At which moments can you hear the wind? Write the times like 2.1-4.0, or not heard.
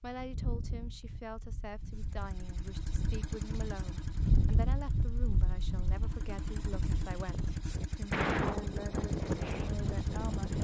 0.0-10.5.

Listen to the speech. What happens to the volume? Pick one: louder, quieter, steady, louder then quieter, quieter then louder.
steady.